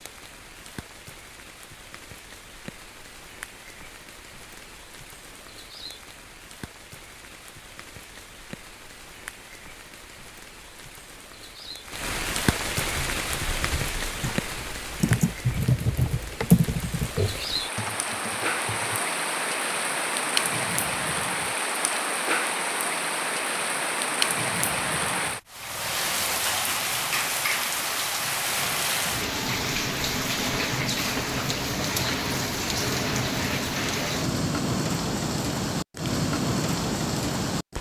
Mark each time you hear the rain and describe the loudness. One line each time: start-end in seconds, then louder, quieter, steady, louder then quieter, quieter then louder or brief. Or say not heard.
0.0-37.7 louder.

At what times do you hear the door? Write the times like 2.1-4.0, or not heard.
not heard.